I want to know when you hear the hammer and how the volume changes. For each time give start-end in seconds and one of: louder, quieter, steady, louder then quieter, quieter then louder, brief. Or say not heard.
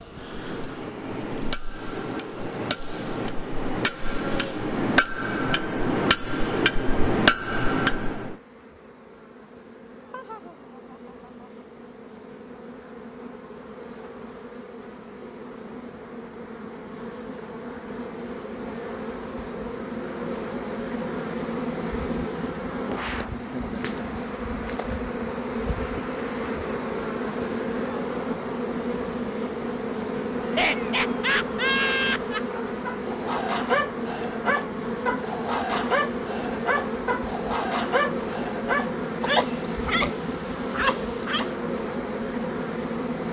0.1-8.3 louder.